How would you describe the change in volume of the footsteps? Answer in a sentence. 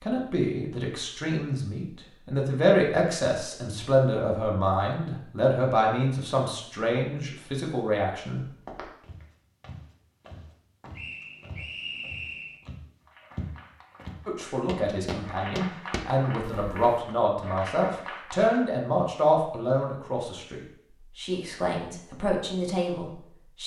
The volume of the footsteps goes up.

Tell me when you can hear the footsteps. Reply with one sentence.
You can hear the footsteps from 8.4 to 16.9 s.